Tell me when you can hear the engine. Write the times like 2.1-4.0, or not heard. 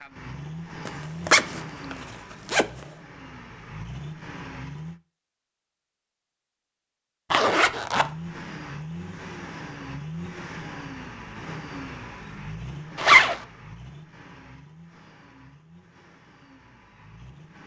0.0-5.0, 7.9-17.6.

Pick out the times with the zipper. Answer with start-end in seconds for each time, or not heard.
0.8-2.6, 7.3-8.1, 12.9-13.4.